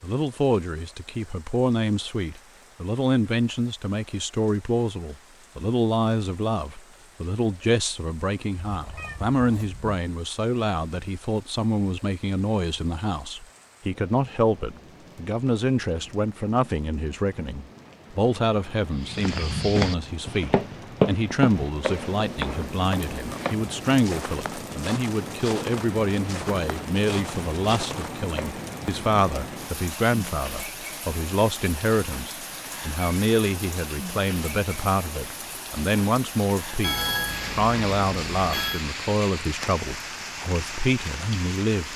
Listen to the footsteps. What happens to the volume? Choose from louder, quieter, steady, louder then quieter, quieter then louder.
quieter.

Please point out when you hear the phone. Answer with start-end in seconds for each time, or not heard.
36.8-38.9.